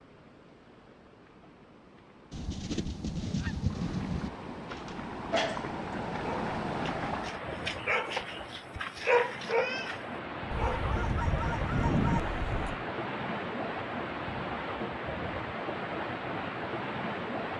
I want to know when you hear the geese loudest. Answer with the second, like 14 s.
12 s.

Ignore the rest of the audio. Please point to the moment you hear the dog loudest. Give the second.
9 s.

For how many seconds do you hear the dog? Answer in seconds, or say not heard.
6 s.